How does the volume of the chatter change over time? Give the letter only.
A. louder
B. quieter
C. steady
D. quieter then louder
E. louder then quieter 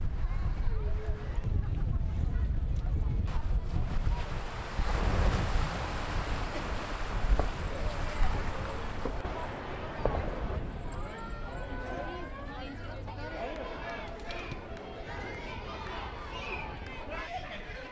A.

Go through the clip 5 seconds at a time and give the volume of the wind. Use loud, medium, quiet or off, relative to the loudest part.
loud, loud, medium, quiet.